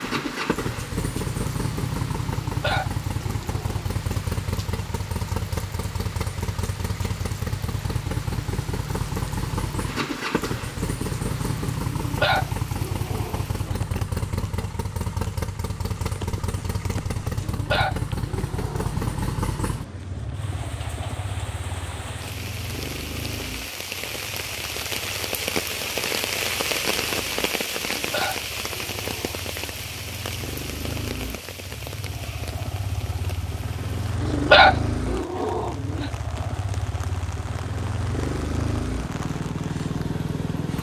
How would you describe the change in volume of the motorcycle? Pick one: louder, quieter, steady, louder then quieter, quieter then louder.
quieter then louder.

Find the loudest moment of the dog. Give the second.
35 s.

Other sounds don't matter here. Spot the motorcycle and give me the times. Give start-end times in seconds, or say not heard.
0.0-40.7.